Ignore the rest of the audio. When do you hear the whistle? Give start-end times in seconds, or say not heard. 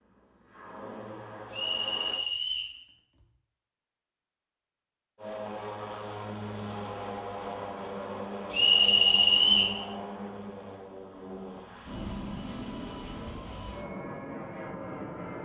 1.5-2.8, 8.5-9.8.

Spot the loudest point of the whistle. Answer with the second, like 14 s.
9 s.